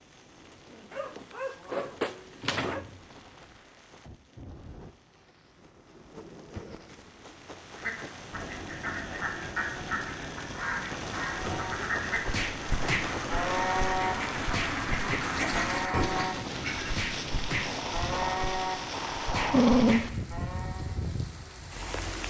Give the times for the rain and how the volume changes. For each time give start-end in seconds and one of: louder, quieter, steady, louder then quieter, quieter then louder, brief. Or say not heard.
0.0-22.2 louder.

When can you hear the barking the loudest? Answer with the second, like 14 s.
20 s.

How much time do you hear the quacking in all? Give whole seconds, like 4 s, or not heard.
9 s.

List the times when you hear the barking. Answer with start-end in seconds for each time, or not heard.
0.9-2.8, 19.5-20.1.